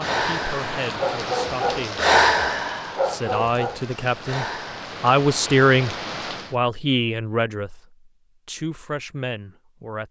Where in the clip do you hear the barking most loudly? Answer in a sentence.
The volume of the barking peaks at 2 seconds.